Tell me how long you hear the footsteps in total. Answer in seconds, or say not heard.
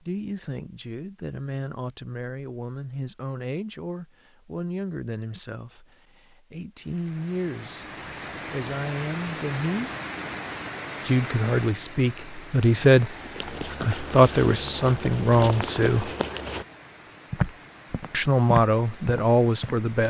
6 s.